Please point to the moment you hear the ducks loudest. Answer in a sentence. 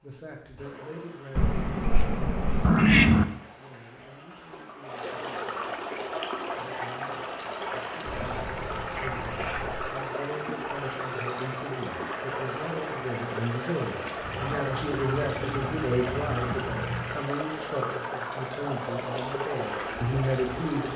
The loudest moment of the ducks is at 3 seconds.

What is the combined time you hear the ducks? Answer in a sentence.
The ducks can be heard for 7 seconds in total.